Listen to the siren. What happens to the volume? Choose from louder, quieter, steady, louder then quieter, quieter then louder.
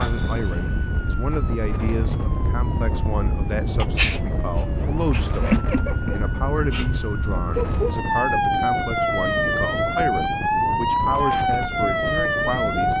louder.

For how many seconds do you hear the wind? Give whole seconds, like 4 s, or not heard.
13 s.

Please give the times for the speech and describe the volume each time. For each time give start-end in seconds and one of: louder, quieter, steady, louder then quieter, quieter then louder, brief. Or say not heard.
0.0-12.9 steady.